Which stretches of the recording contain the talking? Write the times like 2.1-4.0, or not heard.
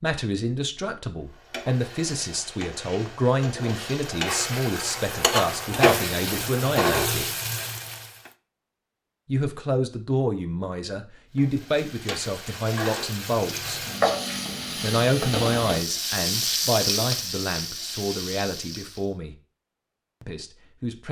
0.0-7.3, 9.2-13.8, 14.8-19.4, 20.2-21.0.